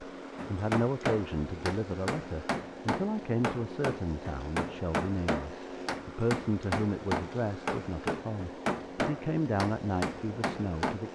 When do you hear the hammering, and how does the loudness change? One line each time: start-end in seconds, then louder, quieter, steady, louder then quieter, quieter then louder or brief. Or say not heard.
0.3-10.9 steady.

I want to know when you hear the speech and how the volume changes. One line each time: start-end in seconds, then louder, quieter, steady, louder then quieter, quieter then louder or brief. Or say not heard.
0.0-11.1 steady.